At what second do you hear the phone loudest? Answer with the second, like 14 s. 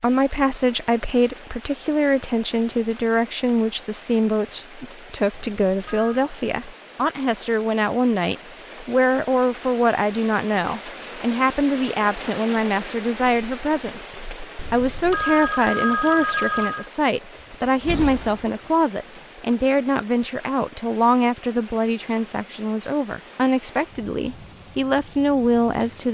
16 s.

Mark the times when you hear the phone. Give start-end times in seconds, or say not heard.
5.3-6.2, 14.6-16.9.